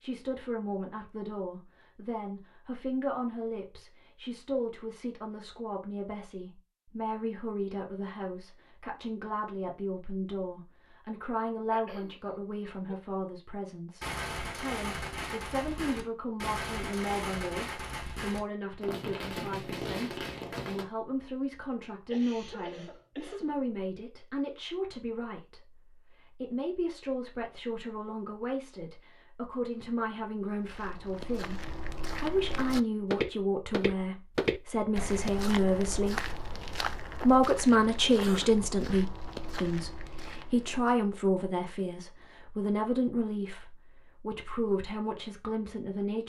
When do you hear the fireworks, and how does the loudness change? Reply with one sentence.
You can hear the fireworks from 14.0 to 20.9 s, at a steady volume.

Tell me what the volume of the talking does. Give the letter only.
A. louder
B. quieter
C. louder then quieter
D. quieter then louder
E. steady
A.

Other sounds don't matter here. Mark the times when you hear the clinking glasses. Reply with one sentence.
The clinking glasses can't be heard in this clip.